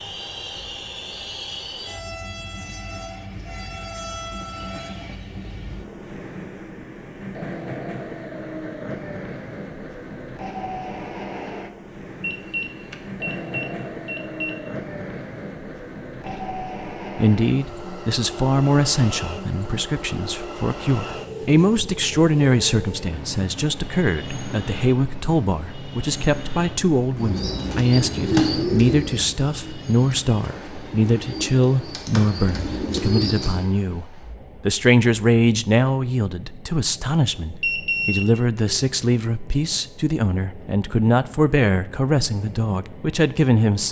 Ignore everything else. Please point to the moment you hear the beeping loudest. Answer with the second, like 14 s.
38 s.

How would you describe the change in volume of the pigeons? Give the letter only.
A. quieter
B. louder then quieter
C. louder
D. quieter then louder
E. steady
D.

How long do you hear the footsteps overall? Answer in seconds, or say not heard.
not heard.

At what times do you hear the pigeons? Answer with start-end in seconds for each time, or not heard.
27.1-33.6.